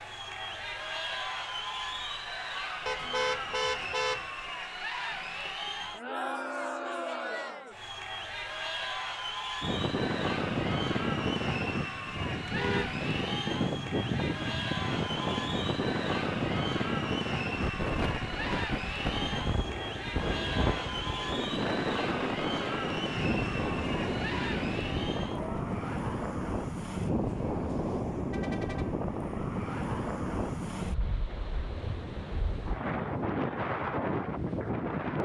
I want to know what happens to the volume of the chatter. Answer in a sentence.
The loudness of the chatter stays about the same.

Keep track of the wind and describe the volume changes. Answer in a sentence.
The volume of the wind stays about the same.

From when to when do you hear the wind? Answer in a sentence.
The wind can be heard from 9.6 to 35.2 s.